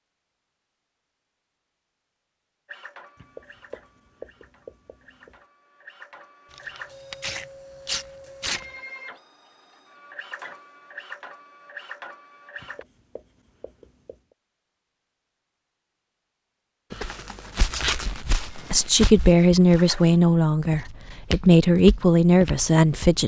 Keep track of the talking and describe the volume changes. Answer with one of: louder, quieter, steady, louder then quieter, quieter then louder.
quieter then louder.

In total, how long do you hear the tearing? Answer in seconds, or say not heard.
3 s.